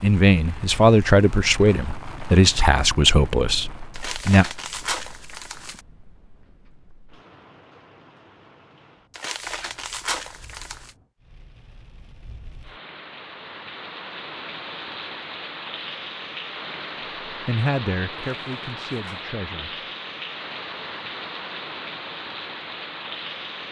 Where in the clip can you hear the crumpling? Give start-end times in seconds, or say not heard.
3.9-5.8, 9.1-10.9, 18.3-19.2.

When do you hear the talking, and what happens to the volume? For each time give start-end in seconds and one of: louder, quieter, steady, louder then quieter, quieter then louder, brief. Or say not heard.
0.0-4.5 quieter
17.2-19.9 brief.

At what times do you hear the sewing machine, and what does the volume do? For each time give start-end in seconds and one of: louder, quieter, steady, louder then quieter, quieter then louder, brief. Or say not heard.
not heard.